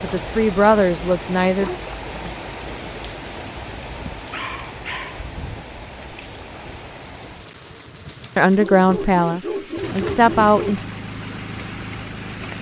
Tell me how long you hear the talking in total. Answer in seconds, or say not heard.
4 s.